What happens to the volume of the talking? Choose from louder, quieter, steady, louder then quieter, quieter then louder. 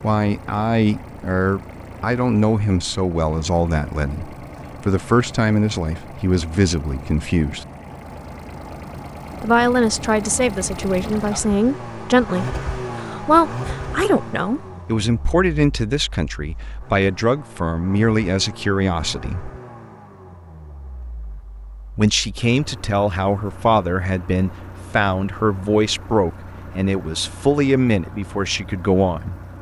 steady.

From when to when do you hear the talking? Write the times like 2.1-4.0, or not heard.
0.0-7.7, 9.4-19.5, 21.9-29.4.